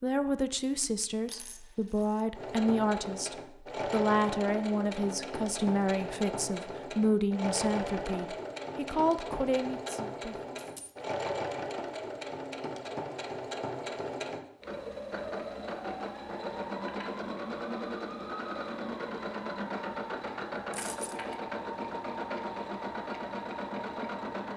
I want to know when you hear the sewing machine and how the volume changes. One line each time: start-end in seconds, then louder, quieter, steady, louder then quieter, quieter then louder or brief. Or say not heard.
2.4-24.5 steady.